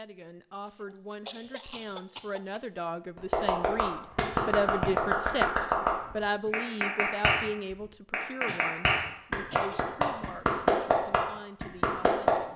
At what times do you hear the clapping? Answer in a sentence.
You can hear the clapping from 3.1 to 12.3 s.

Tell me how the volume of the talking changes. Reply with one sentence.
The volume of the talking goes up, then down.